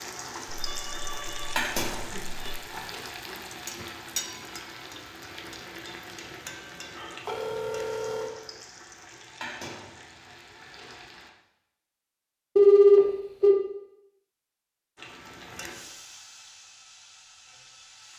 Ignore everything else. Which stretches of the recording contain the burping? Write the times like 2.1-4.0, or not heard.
not heard.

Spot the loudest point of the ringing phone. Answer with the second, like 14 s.
13 s.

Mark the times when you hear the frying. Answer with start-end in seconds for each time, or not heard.
0.0-11.3, 14.9-18.1.